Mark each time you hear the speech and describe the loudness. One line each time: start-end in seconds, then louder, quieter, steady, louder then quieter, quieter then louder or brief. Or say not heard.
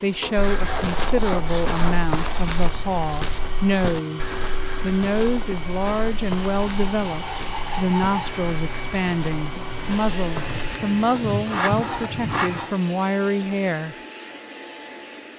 0.0-14.0 steady.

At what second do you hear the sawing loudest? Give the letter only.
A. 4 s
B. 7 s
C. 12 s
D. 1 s
C.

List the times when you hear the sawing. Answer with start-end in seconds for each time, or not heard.
0.2-2.0, 6.4-8.3, 10.3-12.8.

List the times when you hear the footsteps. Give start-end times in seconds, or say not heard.
0.3-10.8.